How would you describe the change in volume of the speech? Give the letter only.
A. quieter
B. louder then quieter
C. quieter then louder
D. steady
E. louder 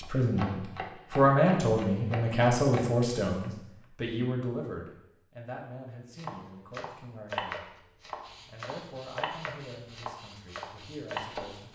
A.